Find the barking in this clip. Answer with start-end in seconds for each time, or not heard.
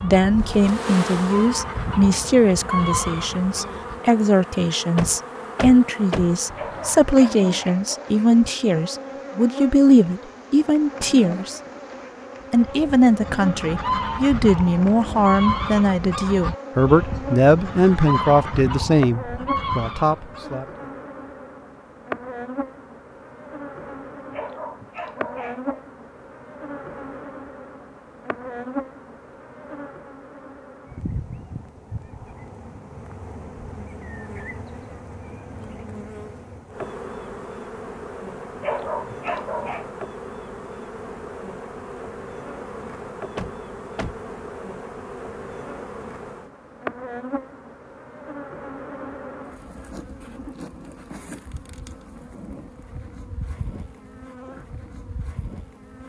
6.3-8.2, 24.1-25.8, 38.4-39.9.